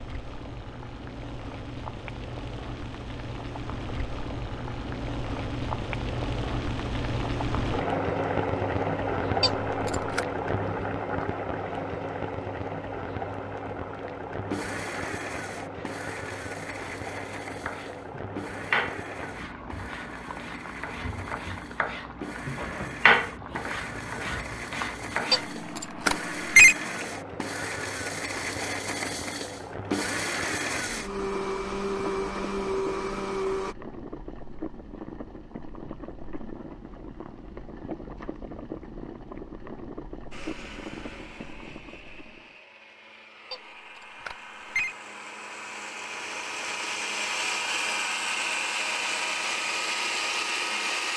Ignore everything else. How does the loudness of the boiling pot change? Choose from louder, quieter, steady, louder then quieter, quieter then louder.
quieter.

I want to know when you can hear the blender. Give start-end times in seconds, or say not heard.
14.4-33.8, 40.3-51.1.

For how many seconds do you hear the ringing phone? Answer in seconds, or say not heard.
4 s.